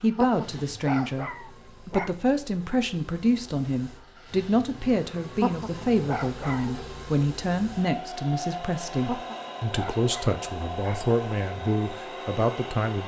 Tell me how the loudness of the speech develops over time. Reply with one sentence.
The loudness of the speech stays about the same.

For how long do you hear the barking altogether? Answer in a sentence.
You can hear the barking for 5 seconds altogether.